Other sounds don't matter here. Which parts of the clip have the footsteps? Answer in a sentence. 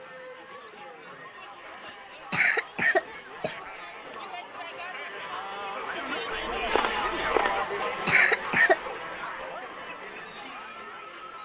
The footsteps can't be heard in this clip.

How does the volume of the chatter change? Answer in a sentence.
The loudness of the chatter goes up, then down.